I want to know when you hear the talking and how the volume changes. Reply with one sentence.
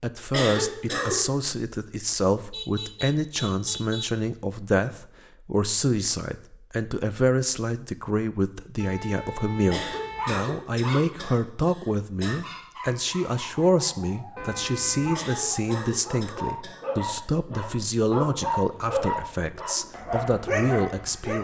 You can hear the talking from 0.0 to 21.3 s, at a steady volume.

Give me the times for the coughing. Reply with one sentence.
The coughing can be heard from 0.3 to 1.2 s, from 9.7 to 12.3 s and from 15.2 to 17.1 s.